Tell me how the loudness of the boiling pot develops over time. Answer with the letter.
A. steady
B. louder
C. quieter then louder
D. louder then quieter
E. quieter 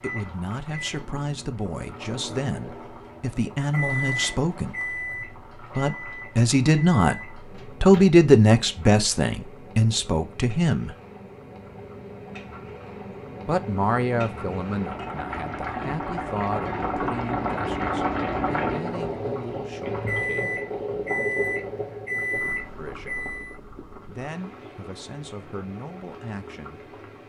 D.